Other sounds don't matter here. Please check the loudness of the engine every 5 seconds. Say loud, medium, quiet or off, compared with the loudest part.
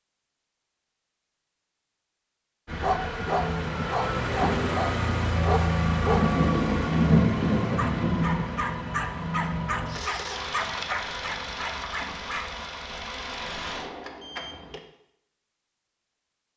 loud, loud, medium, off.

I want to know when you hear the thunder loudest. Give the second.
7 s.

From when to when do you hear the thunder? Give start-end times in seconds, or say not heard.
6.0-8.8.